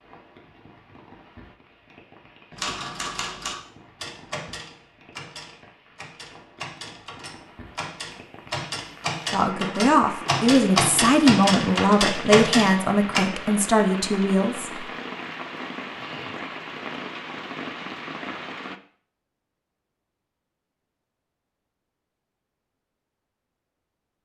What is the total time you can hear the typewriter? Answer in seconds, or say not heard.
11 s.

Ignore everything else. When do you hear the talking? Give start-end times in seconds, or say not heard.
9.3-14.8.